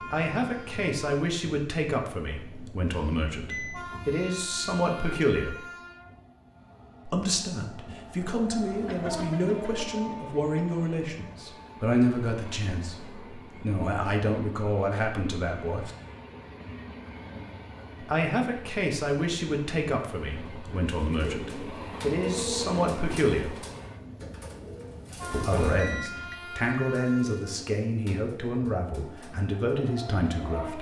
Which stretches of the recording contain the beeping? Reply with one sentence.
You can hear the beeping from 2.9 to 3.9 s and from 25.8 to 26.4 s.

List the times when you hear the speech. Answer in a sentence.
The speech can be heard from 0.1 to 5.7 s, from 7.0 to 15.9 s, from 18.0 to 23.6 s and from 25.3 to 30.7 s.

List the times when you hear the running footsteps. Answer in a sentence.
The running footsteps can't be heard in this clip.